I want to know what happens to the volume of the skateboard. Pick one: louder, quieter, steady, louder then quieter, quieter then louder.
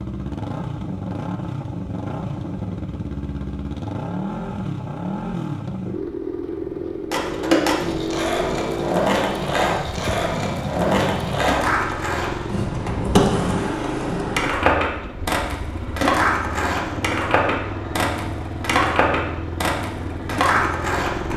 steady.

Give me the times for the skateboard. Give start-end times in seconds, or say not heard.
7.1-21.3.